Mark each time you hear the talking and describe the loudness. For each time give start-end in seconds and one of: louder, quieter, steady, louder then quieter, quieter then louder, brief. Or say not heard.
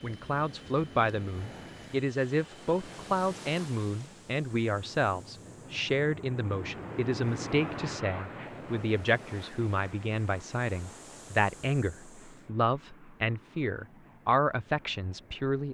0.0-15.6 steady.